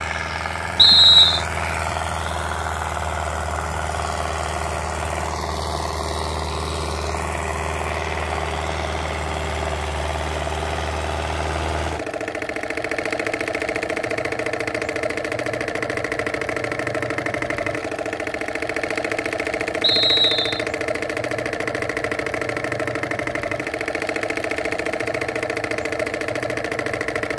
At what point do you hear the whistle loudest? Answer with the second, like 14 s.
1 s.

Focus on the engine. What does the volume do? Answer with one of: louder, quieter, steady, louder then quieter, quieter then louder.
steady.